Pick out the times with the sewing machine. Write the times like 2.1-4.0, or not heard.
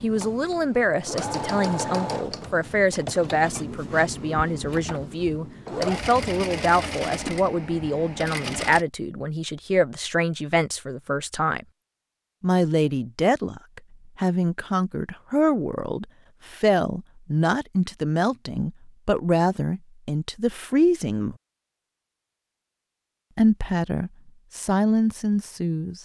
0.0-8.8.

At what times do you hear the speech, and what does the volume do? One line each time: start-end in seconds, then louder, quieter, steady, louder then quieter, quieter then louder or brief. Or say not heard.
0.0-11.7 steady
12.4-21.4 steady
23.4-25.9 brief.